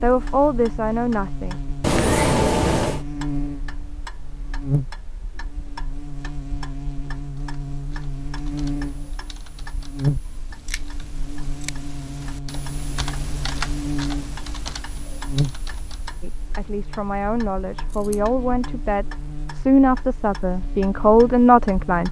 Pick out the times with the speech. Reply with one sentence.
The speech can be heard from 0.0 to 1.6 s and from 16.2 to 22.0 s.